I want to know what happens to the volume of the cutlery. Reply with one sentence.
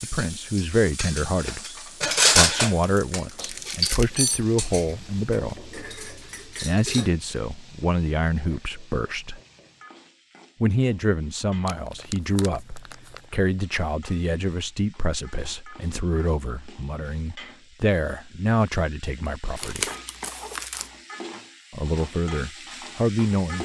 The loudness of the cutlery goes up, then down.